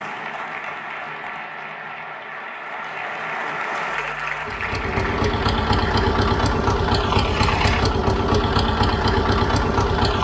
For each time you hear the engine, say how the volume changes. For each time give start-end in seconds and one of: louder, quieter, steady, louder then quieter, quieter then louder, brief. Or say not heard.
4.4-10.1 steady.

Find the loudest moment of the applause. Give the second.
4 s.